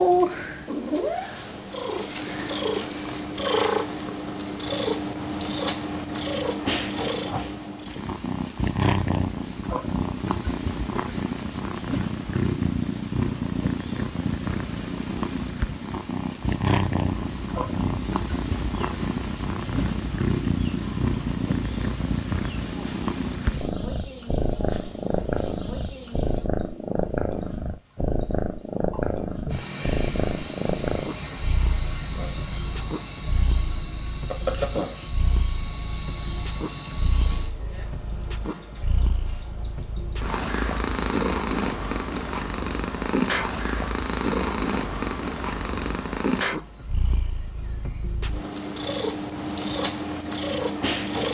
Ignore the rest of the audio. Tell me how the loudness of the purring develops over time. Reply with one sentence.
The volume of the purring goes down, then up.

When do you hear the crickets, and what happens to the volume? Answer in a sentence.
The crickets can be heard from 0.0 to 51.2 s, at a steady volume.